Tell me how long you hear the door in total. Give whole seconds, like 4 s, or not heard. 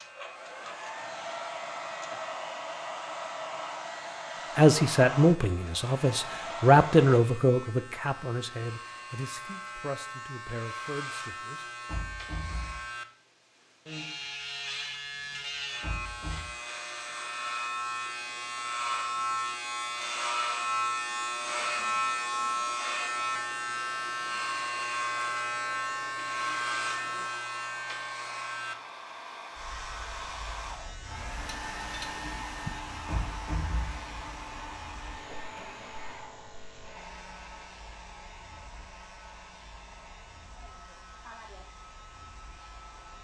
3 s.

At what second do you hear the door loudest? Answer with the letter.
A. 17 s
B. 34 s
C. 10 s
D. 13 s
B.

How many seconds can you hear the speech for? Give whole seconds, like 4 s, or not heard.
7 s.